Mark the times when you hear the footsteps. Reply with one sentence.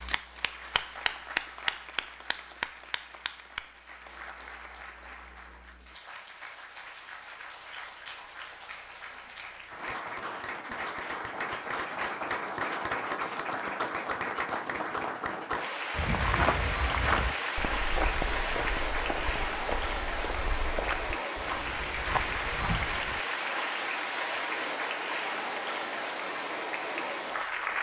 The footsteps can be heard from 15.9 to 23.2 s.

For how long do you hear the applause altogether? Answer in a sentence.
You can hear the applause for 28 seconds altogether.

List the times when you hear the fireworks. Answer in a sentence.
The fireworks can't be heard in this clip.